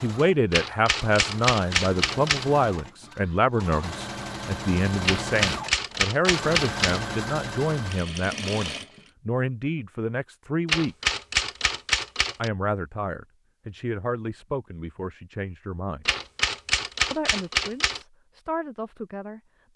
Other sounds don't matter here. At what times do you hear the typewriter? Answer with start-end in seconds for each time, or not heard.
0.5-2.5, 5.0-7.0, 10.7-12.5, 16.1-18.0.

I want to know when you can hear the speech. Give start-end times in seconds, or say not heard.
0.0-11.1, 12.3-16.1, 17.1-19.7.